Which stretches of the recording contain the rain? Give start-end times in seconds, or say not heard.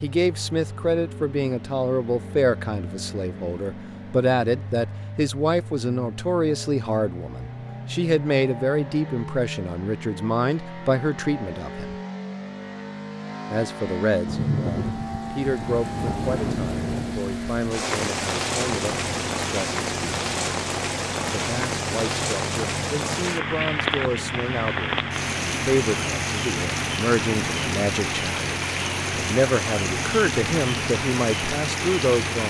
14.2-32.4.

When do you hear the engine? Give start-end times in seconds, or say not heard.
0.0-32.4.